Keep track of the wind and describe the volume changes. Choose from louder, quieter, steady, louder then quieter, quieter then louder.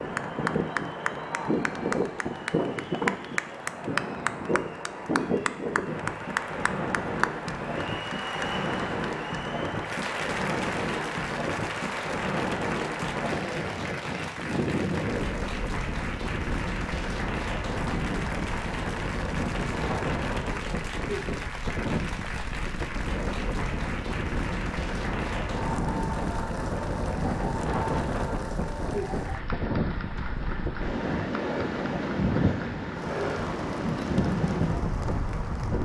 steady.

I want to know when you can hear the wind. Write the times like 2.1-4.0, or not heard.
0.0-35.8.